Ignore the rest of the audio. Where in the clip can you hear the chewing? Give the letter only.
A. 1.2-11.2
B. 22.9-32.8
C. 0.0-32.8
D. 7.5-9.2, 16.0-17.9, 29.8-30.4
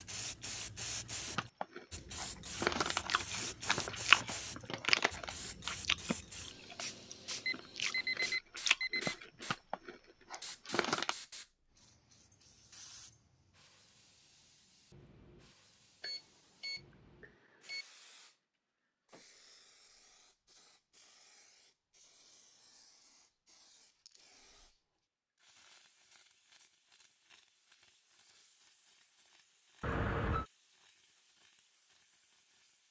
A.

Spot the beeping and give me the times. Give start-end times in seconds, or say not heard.
7.5-9.2, 16.0-17.9, 29.8-30.4.